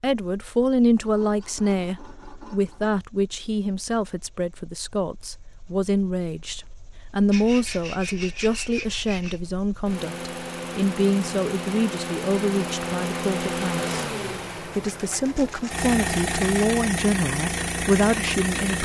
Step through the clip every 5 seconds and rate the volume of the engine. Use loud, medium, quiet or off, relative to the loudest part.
quiet, quiet, loud, loud.